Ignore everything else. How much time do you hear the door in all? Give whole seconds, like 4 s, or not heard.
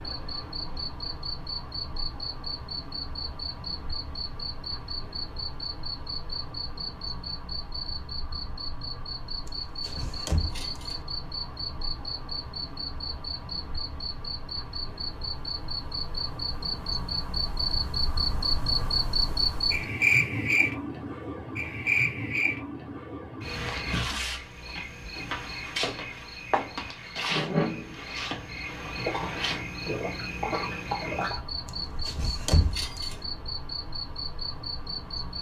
2 s.